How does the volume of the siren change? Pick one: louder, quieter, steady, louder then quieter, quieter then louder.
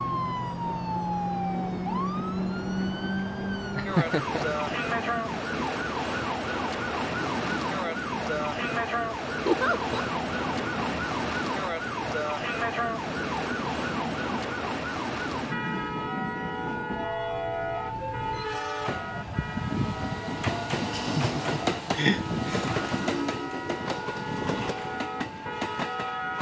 quieter.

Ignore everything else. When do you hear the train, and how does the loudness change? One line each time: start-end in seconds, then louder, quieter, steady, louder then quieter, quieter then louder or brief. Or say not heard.
0.0-26.3 louder.